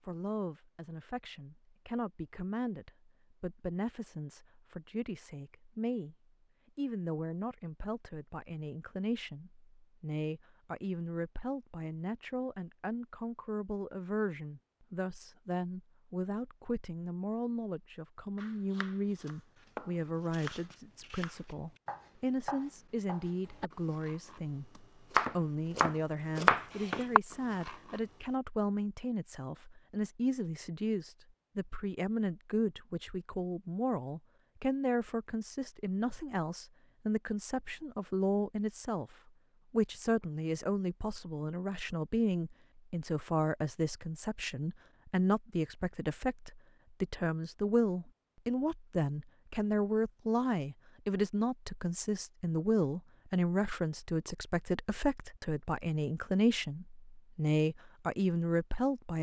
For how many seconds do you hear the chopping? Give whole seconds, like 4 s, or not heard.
10 s.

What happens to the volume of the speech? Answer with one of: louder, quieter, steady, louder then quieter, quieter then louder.
louder.